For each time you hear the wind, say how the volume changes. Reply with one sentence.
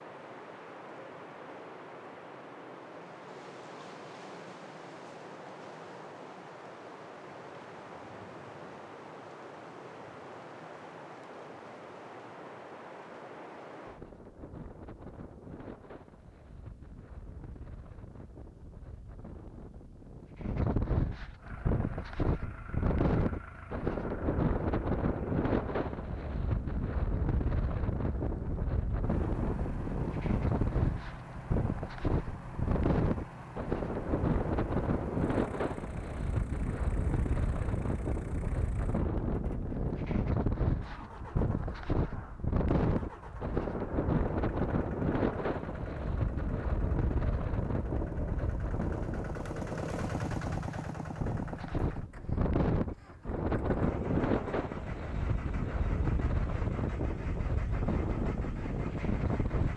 The wind can be heard from 0.0 to 59.7 s, getting louder.